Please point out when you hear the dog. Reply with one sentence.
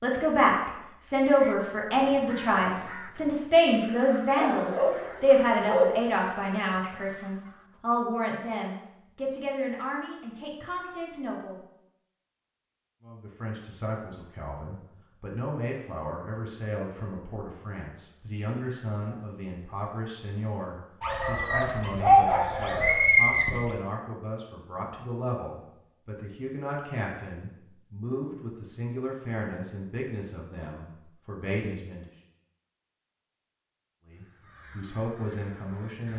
The dog can be heard from 4.3 to 6.2 s and from 21.0 to 23.6 s.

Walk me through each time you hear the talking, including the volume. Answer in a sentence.
The talking can be heard from 0.0 to 11.6 s, getting quieter; from 13.1 to 32.1 s, at a steady volume; and briefly from 34.0 to 36.1 s.